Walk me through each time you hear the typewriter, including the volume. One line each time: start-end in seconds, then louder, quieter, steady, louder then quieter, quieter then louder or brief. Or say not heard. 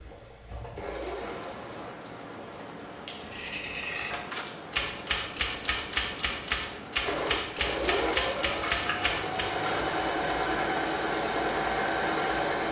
3.9-9.5 steady.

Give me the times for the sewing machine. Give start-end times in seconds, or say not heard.
0.0-1.9, 7.0-12.6.